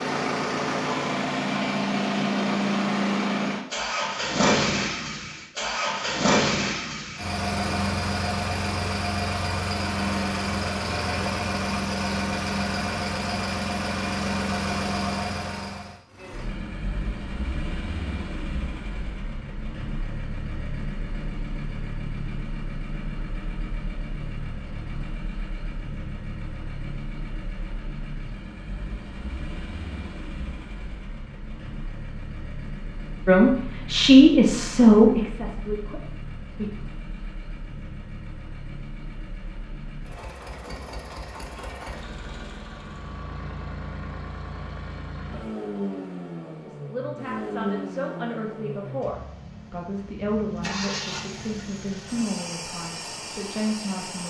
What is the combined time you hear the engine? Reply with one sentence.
The engine can be heard for 54 seconds in total.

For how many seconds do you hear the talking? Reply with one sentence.
You can hear the talking for 11 seconds altogether.